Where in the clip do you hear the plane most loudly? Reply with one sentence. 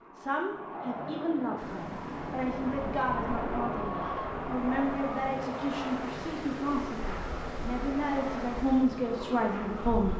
The loudest moment of the plane is at 4 seconds.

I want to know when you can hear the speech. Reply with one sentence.
You can hear the speech from 0.1 to 10.1 s.